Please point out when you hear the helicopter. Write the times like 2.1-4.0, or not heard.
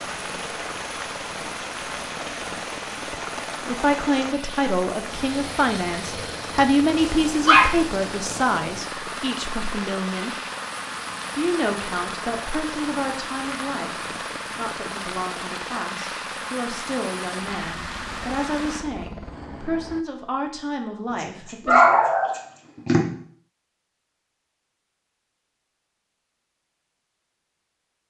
0.0-20.1.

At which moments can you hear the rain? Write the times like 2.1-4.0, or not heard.
0.0-18.9.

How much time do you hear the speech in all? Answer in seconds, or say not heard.
17 s.